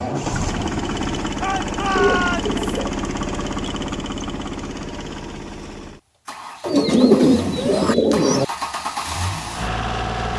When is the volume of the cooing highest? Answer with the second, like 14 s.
7 s.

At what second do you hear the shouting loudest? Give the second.
2 s.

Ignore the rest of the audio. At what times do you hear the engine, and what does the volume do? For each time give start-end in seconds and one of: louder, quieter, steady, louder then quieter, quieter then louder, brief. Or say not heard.
0.0-10.3 quieter then louder.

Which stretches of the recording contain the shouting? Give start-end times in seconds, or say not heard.
1.4-2.5, 7.5-8.0.